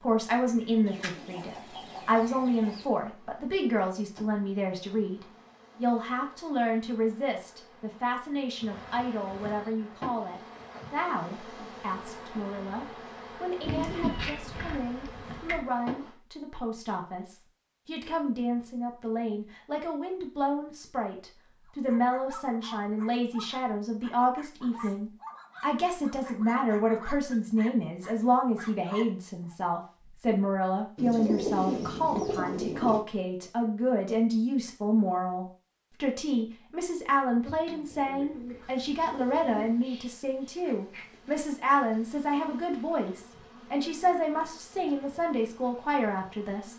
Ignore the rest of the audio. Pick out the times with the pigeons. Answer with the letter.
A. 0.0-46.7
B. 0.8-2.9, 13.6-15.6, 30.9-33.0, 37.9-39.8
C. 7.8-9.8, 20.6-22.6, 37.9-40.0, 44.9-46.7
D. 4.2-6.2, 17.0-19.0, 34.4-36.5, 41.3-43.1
B.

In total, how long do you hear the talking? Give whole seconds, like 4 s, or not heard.
47 s.